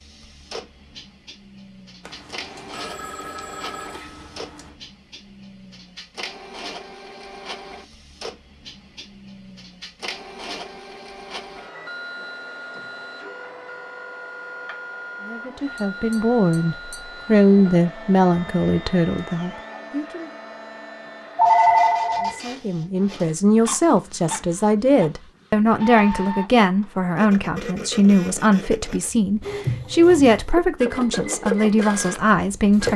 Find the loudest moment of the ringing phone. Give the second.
22 s.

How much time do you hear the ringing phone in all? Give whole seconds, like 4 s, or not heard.
4 s.